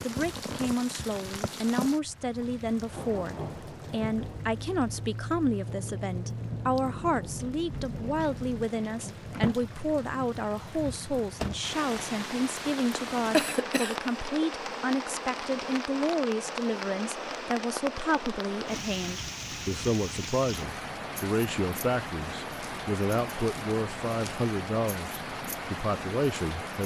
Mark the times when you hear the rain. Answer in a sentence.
The rain can be heard from 0.0 to 26.8 s.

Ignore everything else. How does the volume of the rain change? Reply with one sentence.
The loudness of the rain stays about the same.